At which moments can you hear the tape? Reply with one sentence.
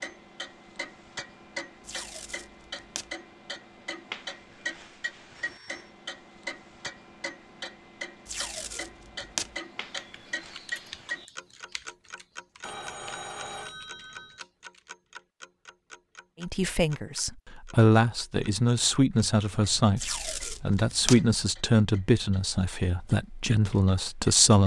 You can hear the tape from 1.8 to 3.1 s, from 8.2 to 9.6 s and from 19.9 to 21.2 s.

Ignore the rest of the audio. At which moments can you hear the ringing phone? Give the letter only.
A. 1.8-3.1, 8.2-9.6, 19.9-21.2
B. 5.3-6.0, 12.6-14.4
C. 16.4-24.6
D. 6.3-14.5
B.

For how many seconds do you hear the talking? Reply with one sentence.
The talking can be heard for 8 seconds in total.